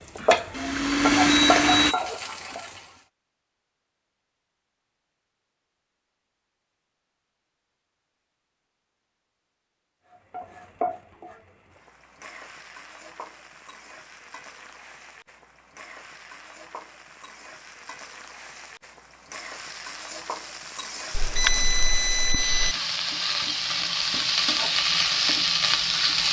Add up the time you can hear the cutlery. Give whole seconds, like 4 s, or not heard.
not heard.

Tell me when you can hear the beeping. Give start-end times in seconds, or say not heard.
0.2-2.0, 21.1-22.8.